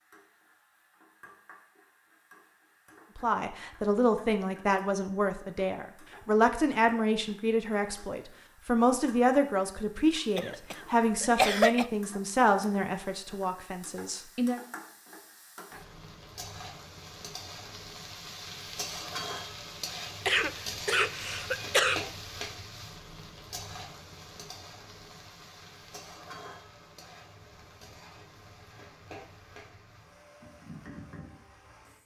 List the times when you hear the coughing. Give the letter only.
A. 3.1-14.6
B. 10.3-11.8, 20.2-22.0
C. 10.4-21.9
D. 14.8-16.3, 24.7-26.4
B.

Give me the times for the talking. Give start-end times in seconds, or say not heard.
3.1-14.6.